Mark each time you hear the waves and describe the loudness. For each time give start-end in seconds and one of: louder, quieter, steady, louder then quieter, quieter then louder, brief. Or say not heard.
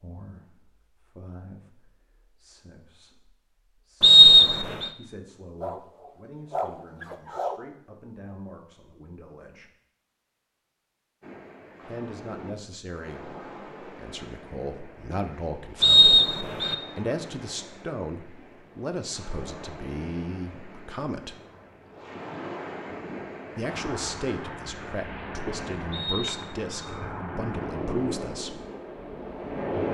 11.2-29.8 louder.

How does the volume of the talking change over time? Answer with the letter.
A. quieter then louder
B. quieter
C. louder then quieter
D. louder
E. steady
D.